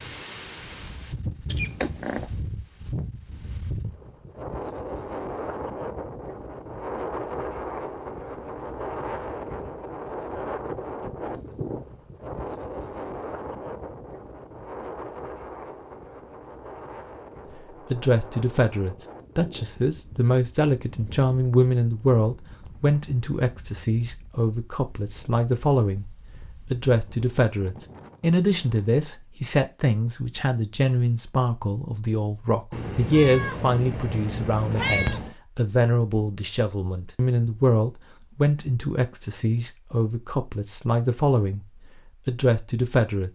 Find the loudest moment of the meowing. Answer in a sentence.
The volume of the meowing peaks at 35 seconds.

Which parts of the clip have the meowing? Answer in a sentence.
You can hear the meowing from 1.5 to 2.2 s and from 32.7 to 35.4 s.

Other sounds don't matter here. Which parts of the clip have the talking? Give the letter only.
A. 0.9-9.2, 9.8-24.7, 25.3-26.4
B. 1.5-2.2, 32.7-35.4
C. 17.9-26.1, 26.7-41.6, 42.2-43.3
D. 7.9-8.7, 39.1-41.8
C.